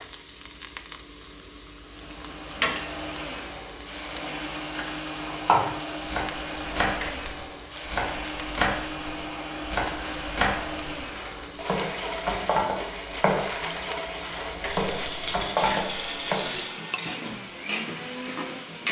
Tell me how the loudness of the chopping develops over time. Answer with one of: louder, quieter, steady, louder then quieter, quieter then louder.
steady.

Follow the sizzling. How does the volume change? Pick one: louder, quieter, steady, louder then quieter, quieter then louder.
steady.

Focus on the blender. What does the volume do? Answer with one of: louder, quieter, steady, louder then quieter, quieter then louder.
steady.